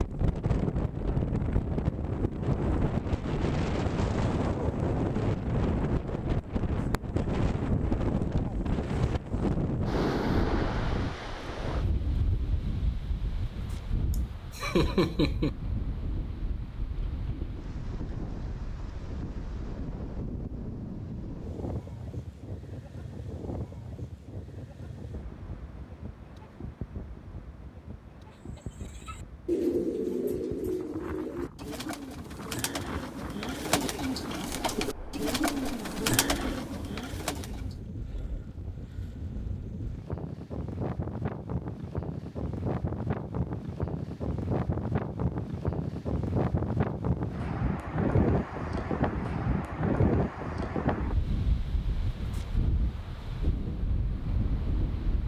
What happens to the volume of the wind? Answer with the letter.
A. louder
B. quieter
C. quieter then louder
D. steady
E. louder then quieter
C.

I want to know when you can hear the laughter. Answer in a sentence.
The laughter can be heard from 14.1 to 15.5 s.